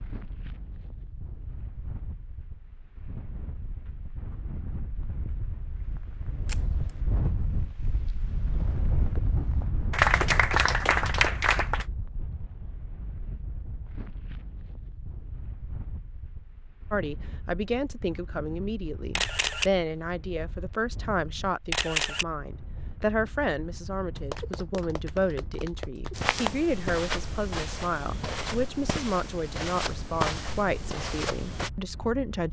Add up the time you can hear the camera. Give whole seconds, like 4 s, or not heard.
2 s.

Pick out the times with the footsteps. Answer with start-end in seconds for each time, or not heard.
26.1-31.7.